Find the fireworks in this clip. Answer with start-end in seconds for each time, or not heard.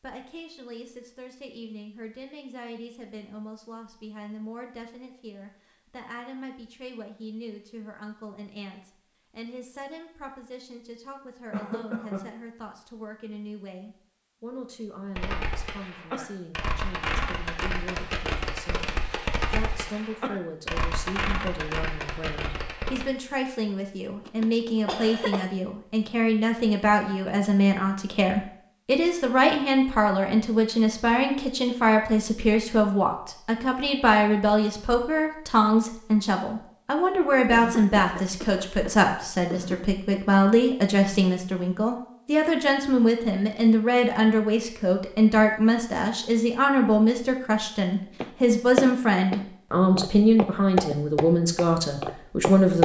15.2-23.1.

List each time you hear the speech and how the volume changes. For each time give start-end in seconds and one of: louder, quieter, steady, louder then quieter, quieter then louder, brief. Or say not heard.
0.0-52.8 louder.